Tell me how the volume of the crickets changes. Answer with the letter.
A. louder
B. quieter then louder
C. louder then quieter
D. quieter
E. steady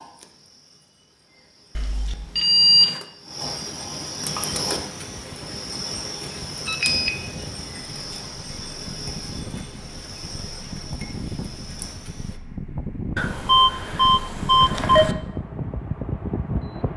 C.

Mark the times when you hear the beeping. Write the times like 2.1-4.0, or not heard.
1.8-3.0, 6.7-7.1, 13.2-15.2.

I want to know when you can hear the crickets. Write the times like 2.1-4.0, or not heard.
0.0-12.4.